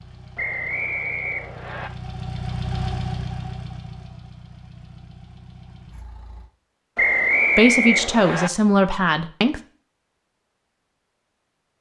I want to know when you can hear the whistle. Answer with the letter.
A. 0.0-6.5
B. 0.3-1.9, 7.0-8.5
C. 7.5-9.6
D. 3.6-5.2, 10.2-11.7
B.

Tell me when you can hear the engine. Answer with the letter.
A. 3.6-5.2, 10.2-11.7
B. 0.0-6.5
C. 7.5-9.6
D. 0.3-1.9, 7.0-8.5
B.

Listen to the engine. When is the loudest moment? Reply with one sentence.
The loudest moment of the engine is at 3 seconds.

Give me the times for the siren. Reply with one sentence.
You can't hear the siren here.